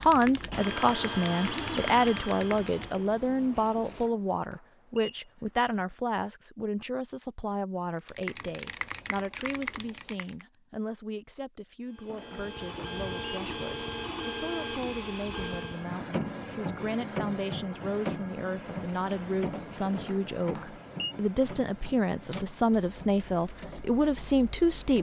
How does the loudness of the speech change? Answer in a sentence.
The loudness of the speech goes down, then up.